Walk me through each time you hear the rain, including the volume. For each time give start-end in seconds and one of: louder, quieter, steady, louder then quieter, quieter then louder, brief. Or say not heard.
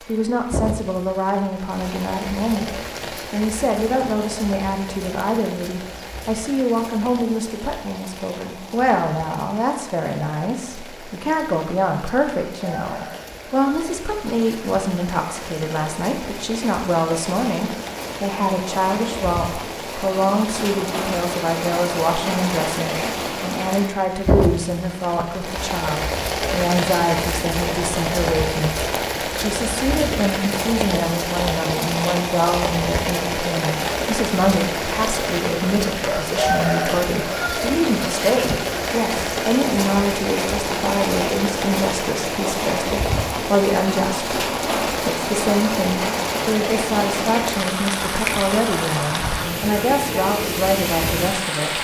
0.0-51.8 louder.